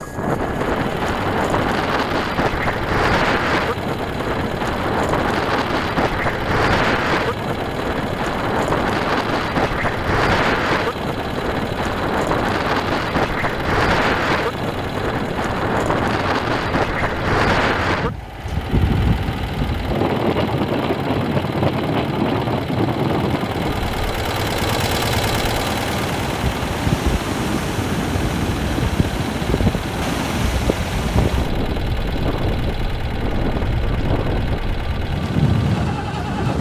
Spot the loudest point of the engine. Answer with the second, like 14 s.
25 s.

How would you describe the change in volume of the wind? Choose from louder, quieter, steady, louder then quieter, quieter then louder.
steady.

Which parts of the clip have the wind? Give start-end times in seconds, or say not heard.
0.0-36.5.